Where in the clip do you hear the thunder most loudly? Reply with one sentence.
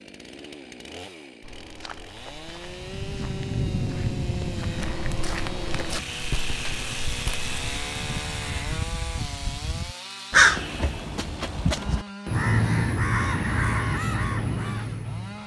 The volume of the thunder peaks at 4 seconds.